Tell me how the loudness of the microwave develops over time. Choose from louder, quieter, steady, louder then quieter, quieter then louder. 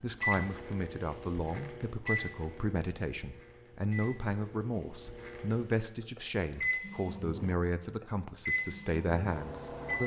quieter then louder.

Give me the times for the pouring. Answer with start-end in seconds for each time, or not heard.
not heard.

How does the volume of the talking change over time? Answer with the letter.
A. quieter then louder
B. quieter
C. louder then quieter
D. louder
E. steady
E.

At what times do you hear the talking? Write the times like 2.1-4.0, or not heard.
0.0-10.0.